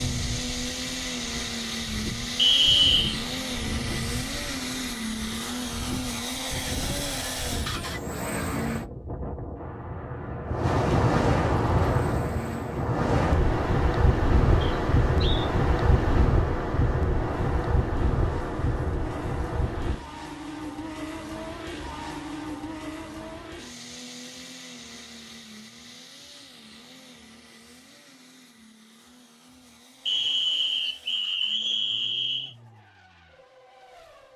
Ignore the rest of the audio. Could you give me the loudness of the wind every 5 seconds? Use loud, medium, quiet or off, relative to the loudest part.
quiet, quiet, loud, loud, off, off, off.